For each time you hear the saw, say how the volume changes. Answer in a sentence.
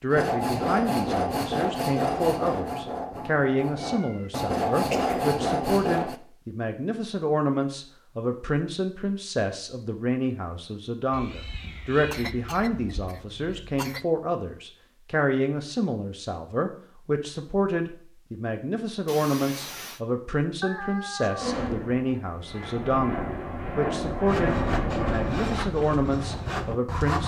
You can hear the saw from 0.1 to 6.2 s, getting quieter then louder; and briefly from 24.2 to 27.2 s.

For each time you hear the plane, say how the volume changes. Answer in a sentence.
You can hear the plane from 21.4 to 25.6 s, getting louder.